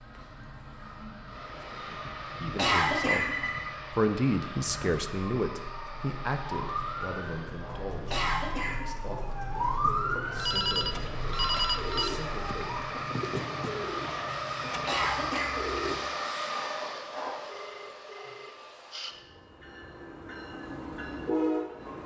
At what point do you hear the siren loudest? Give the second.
10 s.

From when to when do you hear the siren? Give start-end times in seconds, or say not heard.
0.0-12.8.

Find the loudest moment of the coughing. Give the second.
3 s.